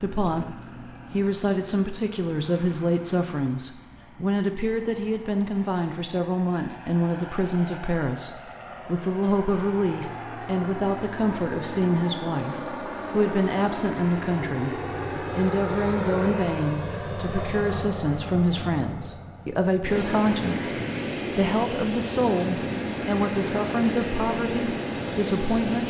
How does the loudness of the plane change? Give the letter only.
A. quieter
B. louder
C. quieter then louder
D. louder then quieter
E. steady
B.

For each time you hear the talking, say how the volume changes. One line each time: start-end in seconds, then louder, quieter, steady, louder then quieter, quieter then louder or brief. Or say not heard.
0.0-25.8 steady.